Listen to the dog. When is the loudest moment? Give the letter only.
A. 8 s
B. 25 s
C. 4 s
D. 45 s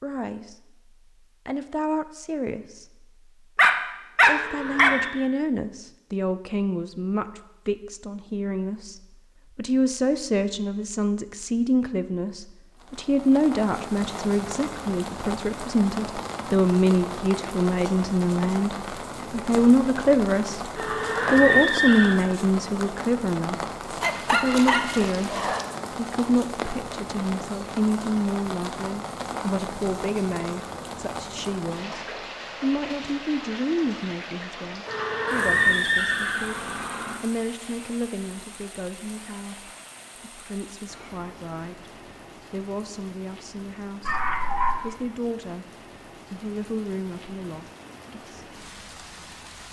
C.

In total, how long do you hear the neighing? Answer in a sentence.
The neighing can be heard for 5 seconds in total.